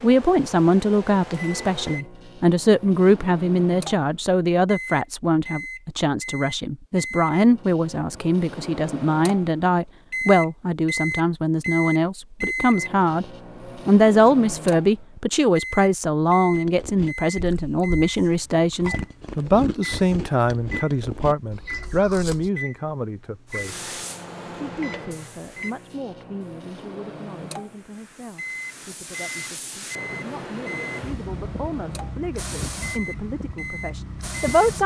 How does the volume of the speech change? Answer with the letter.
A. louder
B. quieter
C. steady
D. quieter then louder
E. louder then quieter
B.